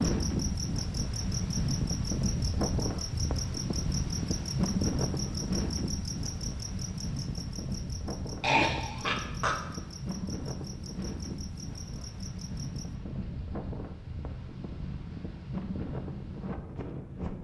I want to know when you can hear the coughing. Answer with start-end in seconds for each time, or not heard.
8.4-9.6.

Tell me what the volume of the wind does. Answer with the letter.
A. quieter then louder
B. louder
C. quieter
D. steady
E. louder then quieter
C.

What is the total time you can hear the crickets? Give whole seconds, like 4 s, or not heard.
13 s.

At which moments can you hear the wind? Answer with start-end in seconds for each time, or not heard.
0.0-17.3.